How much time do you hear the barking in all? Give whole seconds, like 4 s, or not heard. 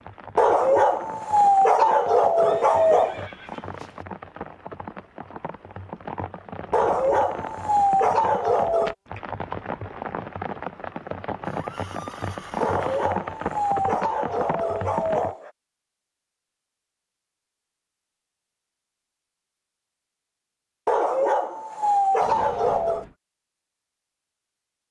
10 s.